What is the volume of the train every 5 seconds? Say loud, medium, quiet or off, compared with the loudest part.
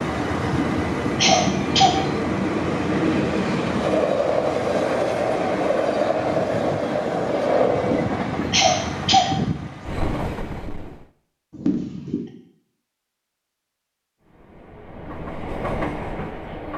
loud, loud, medium, medium.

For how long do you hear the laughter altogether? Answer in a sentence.
You can hear the laughter for 4 seconds altogether.